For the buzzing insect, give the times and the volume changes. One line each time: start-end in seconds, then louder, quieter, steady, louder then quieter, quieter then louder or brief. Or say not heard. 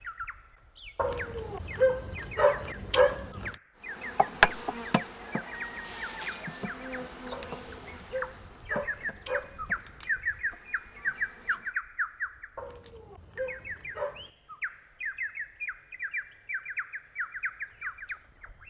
3.9-11.7 quieter.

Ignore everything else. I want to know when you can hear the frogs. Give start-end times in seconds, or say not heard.
not heard.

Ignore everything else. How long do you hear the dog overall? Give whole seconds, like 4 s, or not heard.
7 s.